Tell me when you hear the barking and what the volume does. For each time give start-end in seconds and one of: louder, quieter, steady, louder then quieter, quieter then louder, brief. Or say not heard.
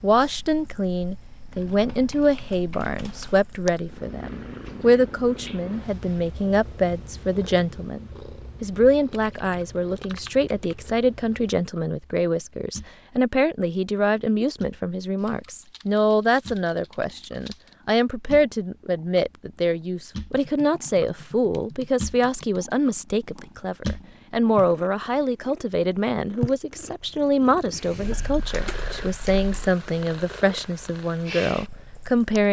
not heard.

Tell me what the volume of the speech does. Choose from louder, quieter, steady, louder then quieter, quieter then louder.
steady.